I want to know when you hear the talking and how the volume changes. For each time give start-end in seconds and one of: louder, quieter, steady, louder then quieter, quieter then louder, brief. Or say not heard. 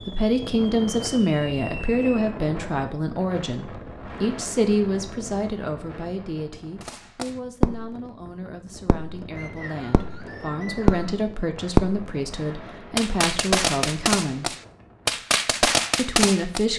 0.1-14.6 quieter then louder
15.9-16.7 brief.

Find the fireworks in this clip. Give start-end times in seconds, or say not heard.
0.0-2.4, 6.8-8.1, 8.8-9.2, 9.9-12.1, 12.9-16.6.